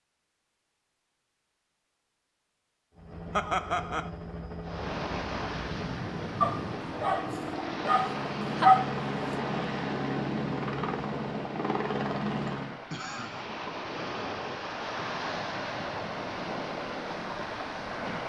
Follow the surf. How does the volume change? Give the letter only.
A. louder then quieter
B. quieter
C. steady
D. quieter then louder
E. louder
D.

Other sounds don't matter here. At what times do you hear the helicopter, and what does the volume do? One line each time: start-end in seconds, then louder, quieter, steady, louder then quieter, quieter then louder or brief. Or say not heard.
2.9-12.8 louder.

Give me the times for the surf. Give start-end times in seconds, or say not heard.
4.6-18.2.